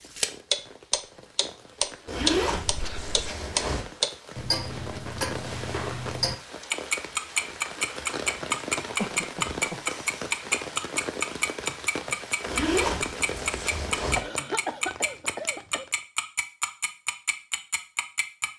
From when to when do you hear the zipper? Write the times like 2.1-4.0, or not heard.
2.0-3.9, 12.4-14.2.